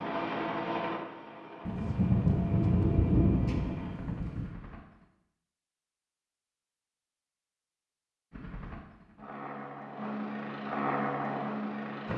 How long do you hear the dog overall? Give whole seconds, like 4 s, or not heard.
not heard.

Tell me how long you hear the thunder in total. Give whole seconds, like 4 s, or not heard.
3 s.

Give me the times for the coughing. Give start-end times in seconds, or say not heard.
not heard.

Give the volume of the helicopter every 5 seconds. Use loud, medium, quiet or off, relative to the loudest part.
medium, medium, loud.